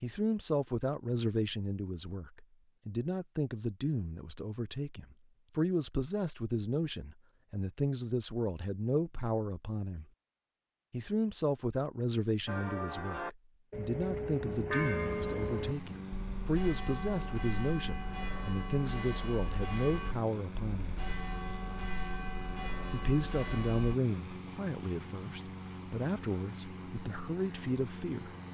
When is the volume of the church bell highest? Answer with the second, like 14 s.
15 s.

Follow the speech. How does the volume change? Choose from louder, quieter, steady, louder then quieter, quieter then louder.
steady.